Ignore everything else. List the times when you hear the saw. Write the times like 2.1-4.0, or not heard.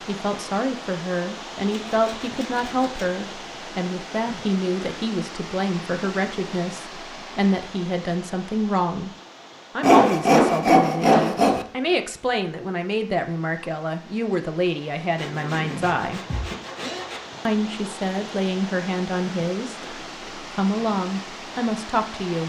1.7-3.1, 9.8-11.7, 15.2-17.2.